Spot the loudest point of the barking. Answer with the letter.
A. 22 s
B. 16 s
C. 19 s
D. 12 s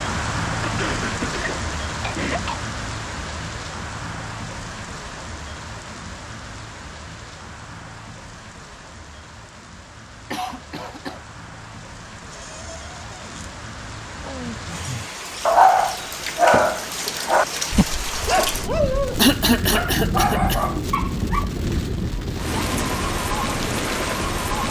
B.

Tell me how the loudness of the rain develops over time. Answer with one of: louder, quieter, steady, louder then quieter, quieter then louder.
quieter then louder.